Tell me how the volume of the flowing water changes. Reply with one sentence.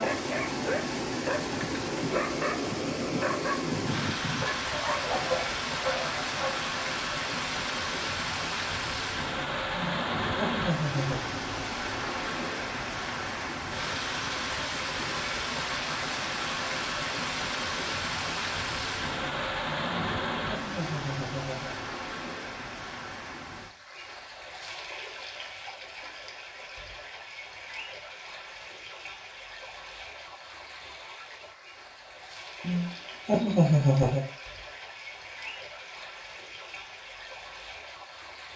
The volume of the flowing water goes down.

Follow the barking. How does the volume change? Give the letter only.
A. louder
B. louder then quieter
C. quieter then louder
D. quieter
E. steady
E.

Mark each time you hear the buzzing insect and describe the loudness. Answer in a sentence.
The buzzing insect can't be heard in this clip.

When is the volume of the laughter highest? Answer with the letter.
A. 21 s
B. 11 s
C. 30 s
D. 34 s
D.